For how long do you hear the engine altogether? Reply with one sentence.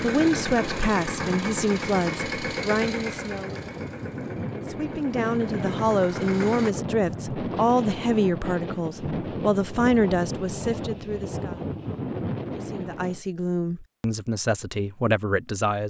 You can hear the engine for 7 seconds altogether.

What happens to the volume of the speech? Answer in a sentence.
The loudness of the speech stays about the same.